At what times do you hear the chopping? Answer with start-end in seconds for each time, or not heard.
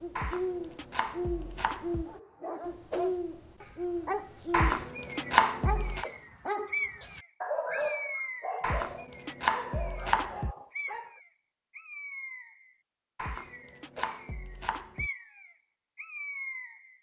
0.1-2.0, 4.5-6.0, 8.6-10.6, 13.2-15.1.